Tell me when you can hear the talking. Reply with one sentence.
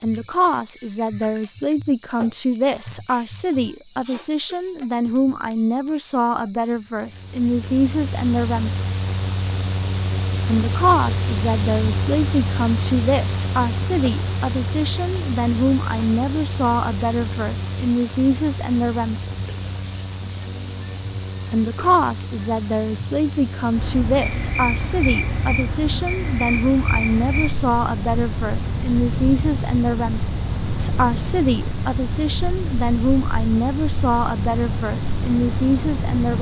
The talking can be heard from 0.0 to 8.7 s, from 10.4 to 19.2 s and from 21.5 to 36.3 s.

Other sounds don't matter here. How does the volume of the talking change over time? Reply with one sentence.
The loudness of the talking stays about the same.